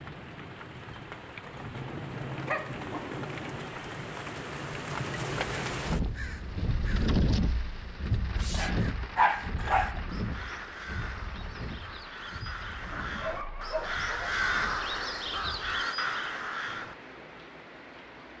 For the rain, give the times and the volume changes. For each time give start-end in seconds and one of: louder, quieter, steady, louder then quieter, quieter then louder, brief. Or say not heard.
0.0-18.3 louder then quieter.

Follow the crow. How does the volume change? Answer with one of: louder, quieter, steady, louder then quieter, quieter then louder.
louder.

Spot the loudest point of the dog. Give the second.
9 s.